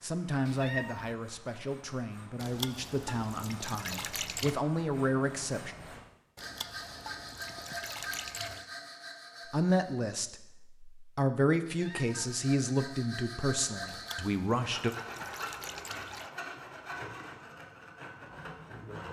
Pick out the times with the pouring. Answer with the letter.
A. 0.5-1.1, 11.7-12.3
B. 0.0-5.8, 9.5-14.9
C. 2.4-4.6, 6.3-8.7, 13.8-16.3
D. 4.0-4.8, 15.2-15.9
C.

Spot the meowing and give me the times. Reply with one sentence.
The meowing can be heard from 0.5 to 1.1 s and from 11.7 to 12.3 s.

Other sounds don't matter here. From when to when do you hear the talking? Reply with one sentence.
You can hear the talking from 0.0 to 5.8 s and from 9.5 to 14.9 s.